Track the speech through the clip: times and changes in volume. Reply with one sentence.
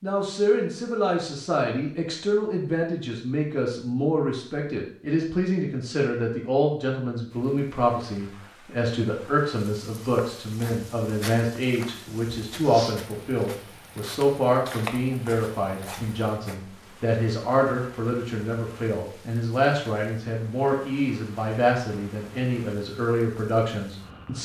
You can hear the speech from 0.0 to 24.4 s, at a steady volume.